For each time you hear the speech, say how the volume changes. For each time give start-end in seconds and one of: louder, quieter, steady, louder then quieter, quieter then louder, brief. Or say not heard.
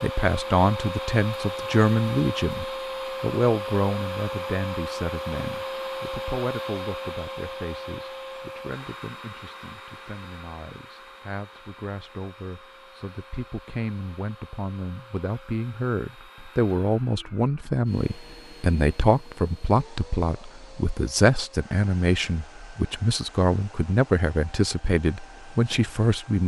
0.0-26.4 quieter then louder.